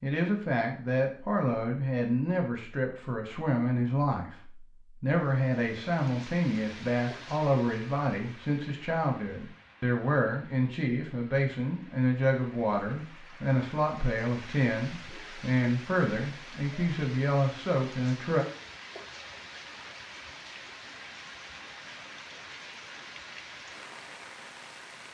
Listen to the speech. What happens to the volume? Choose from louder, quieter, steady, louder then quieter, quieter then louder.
steady.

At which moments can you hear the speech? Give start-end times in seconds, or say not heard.
0.0-18.4.